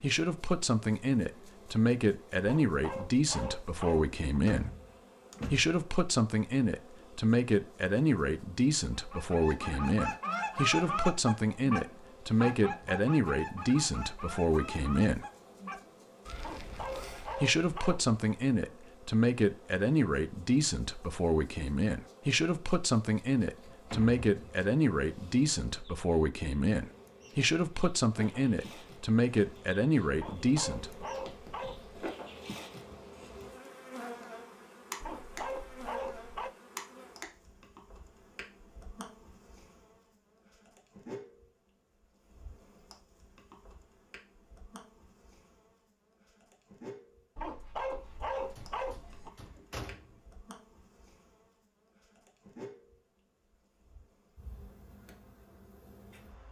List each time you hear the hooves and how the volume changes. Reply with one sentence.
You can't hear the hooves here.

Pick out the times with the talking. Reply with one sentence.
The talking can be heard from 0.0 to 4.7 s, from 5.5 to 15.2 s and from 17.4 to 31.1 s.